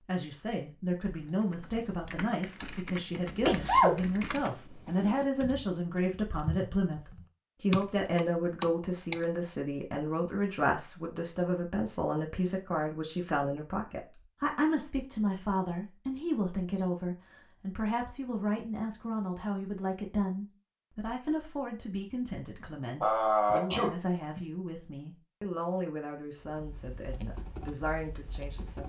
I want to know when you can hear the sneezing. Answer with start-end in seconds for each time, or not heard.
3.2-4.0, 23.0-24.4.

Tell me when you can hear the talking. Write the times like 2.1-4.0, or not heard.
0.0-28.8.